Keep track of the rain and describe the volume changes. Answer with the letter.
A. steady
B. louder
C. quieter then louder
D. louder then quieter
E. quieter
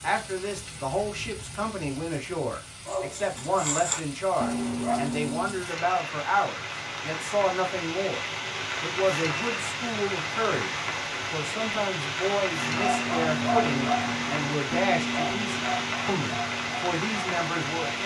B.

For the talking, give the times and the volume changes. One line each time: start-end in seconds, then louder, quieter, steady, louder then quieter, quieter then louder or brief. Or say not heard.
0.0-18.0 steady.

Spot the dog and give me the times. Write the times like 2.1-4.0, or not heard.
2.9-5.7, 12.5-18.0.